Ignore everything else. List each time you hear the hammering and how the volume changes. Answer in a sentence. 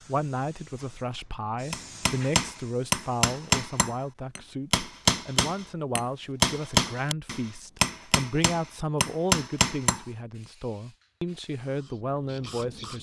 You can hear the hammering from 1.7 to 10.1 s, at a steady volume.